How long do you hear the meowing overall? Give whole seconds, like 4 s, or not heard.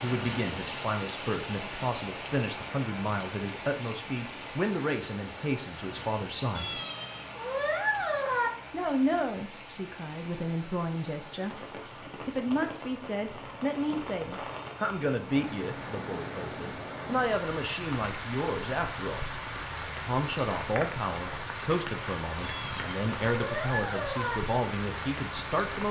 4 s.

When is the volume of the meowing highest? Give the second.
8 s.